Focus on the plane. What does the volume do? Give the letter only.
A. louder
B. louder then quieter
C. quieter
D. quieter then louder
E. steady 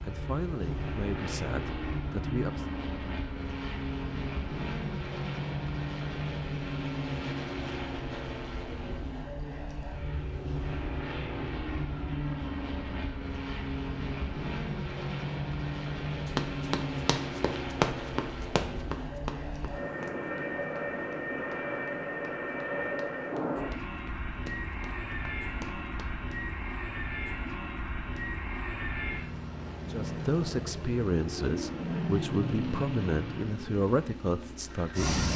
E.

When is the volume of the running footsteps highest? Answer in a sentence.
The loudest moment of the running footsteps is at 18 seconds.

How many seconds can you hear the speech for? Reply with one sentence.
The speech can be heard for 8 seconds in total.